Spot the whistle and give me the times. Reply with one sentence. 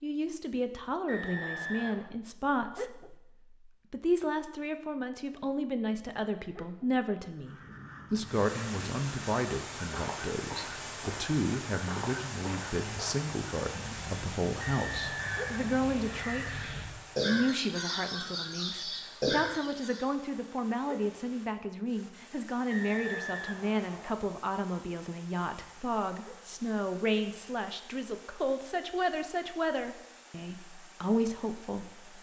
You can hear the whistle from 1.1 to 2.1 s, from 14.6 to 16.2 s and from 22.7 to 24.2 s.